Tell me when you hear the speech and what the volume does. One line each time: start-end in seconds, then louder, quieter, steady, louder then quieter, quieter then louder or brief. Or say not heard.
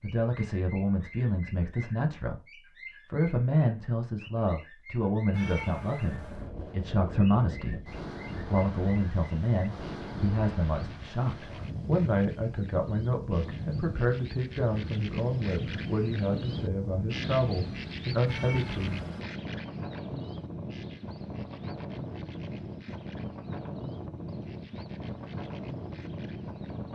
0.0-19.0 steady.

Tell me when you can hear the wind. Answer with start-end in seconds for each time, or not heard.
6.0-26.9.